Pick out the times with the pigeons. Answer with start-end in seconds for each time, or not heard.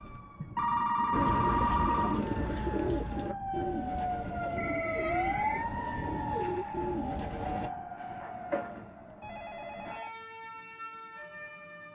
1.1-7.7.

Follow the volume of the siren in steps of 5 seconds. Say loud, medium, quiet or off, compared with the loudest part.
loud, loud, medium.